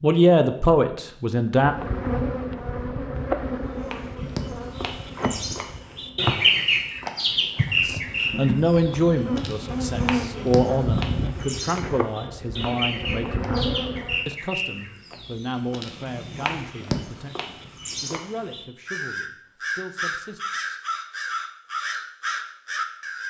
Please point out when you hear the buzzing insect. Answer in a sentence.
You can hear the buzzing insect from 1.6 to 14.2 s.